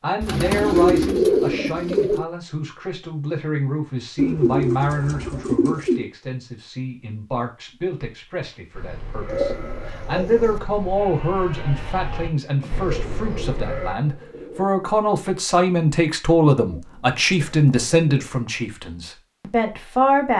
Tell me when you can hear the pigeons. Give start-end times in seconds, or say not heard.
0.2-2.2, 4.2-6.1, 9.3-10.6, 12.6-14.7, 16.6-18.4.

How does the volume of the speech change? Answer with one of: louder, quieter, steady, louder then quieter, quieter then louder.
louder.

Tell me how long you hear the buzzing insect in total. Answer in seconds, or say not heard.
not heard.